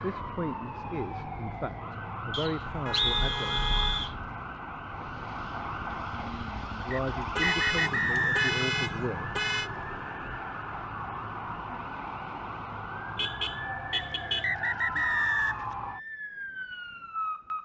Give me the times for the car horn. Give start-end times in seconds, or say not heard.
2.9-4.1, 7.3-9.7, 13.2-14.5.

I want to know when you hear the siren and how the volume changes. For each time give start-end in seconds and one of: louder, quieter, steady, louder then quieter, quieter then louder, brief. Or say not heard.
0.0-17.5 steady.